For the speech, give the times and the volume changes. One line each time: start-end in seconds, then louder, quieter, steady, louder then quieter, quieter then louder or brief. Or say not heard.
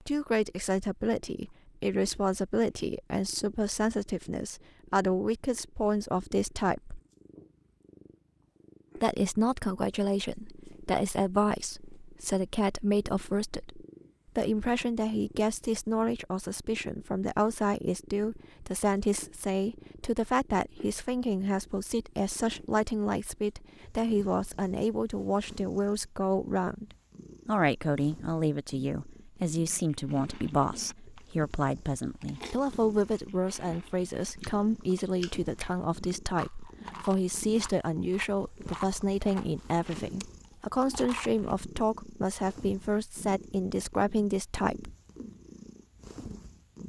0.1-7.0 steady
8.9-26.9 steady
27.4-44.9 steady.